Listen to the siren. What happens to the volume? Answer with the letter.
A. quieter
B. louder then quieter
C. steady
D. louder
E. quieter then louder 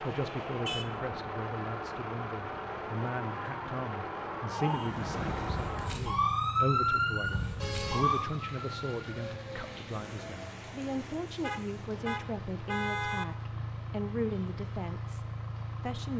B.